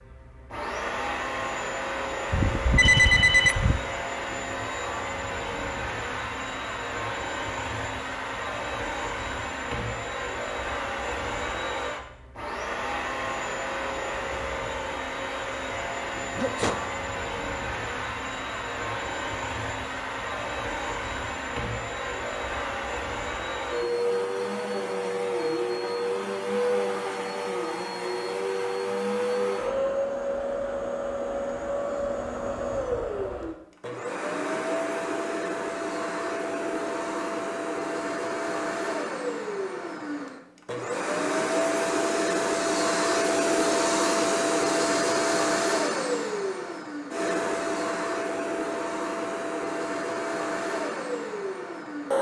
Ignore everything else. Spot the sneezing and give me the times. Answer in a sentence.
The sneezing can be heard from 16.4 to 16.8 s.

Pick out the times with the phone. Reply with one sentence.
The phone can be heard from 2.3 to 3.8 s.